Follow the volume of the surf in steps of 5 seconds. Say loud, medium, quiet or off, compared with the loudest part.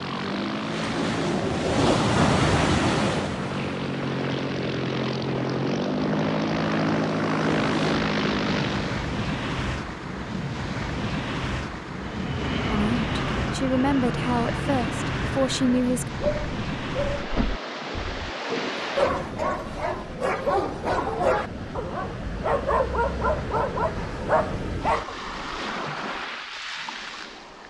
loud, medium, medium, medium, medium, medium.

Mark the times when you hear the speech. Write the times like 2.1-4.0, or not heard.
12.7-16.1.